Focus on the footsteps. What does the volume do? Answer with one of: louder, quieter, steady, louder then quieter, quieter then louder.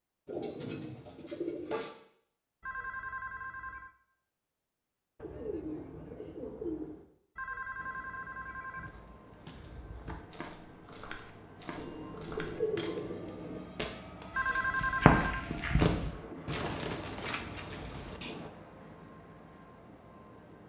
louder.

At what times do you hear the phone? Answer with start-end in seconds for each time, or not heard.
2.6-3.9, 7.3-8.9, 14.3-15.5.